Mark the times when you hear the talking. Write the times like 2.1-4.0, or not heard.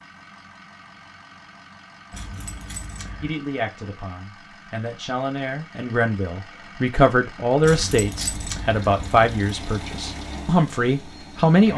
3.2-11.7.